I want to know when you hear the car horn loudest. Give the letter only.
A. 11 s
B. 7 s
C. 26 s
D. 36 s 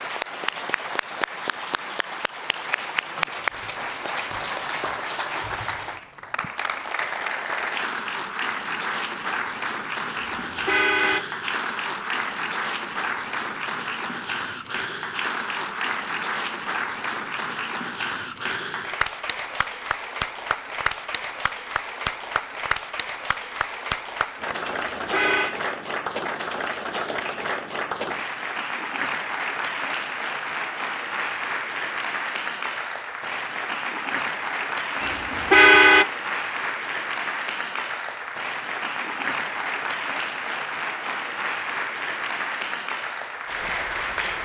D.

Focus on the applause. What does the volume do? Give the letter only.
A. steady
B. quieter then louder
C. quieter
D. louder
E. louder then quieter
A.